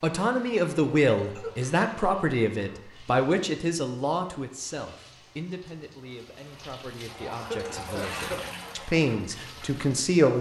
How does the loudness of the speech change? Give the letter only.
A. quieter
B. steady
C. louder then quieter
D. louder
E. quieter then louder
E.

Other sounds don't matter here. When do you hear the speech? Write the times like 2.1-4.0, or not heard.
0.0-10.3.